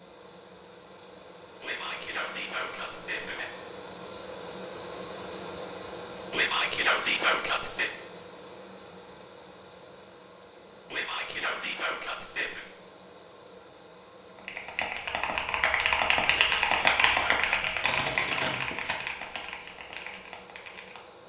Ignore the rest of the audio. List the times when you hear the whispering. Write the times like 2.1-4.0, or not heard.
1.6-3.5, 6.3-7.9, 10.9-12.7, 16.3-17.7.